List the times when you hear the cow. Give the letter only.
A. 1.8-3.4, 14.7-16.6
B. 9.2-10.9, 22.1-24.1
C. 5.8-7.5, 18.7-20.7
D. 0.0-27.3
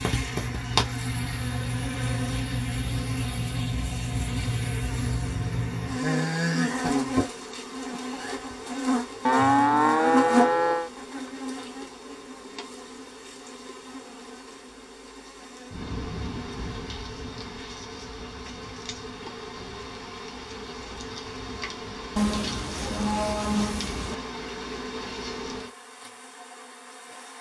B.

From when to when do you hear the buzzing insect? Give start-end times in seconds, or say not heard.
0.0-27.3.